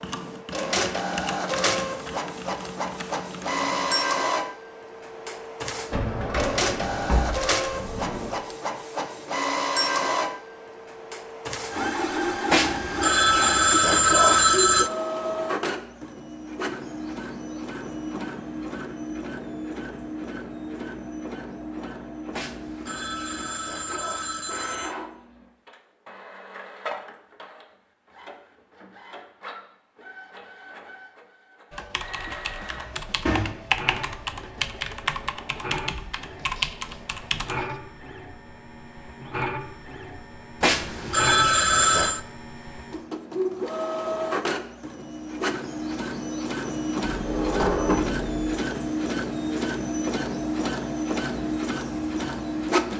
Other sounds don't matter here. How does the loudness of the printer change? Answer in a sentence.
The loudness of the printer goes down, then up.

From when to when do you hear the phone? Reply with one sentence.
The phone can be heard from 12.5 to 14.9 s, from 22.3 to 24.9 s and from 40.6 to 42.2 s.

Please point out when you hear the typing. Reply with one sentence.
You can hear the typing from 0.0 to 4.0 s and from 31.7 to 37.8 s.